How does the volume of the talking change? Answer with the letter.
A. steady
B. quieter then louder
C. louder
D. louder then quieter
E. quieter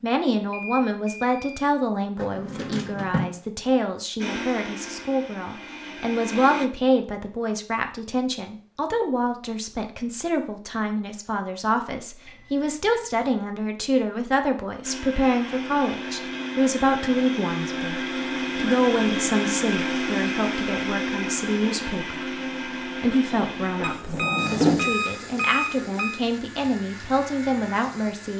A.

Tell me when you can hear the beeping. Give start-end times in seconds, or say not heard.
0.5-1.7, 12.2-13.3, 23.8-26.2.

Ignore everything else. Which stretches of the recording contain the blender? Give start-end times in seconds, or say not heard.
4.2-6.7, 14.8-28.3.